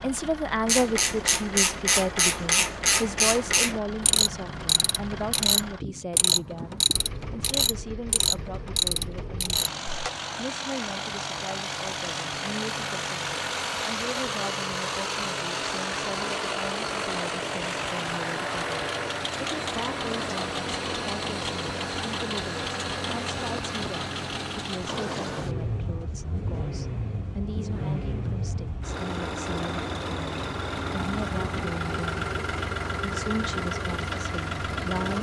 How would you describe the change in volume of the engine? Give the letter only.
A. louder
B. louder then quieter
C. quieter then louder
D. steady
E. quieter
A.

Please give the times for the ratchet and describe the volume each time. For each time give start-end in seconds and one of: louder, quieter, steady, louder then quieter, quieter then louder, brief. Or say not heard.
0.7-10.1 steady.